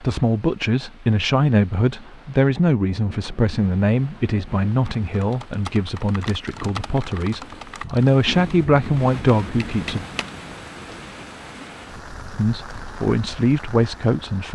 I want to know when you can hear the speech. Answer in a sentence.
The speech can be heard from 0.0 to 10.1 s and from 12.3 to 14.5 s.